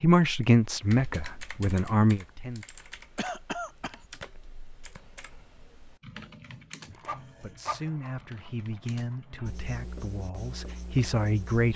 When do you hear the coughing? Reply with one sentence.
You can hear the coughing from 3.1 to 4.0 s.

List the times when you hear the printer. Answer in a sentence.
You can hear the printer from 6.8 to 9.5 s.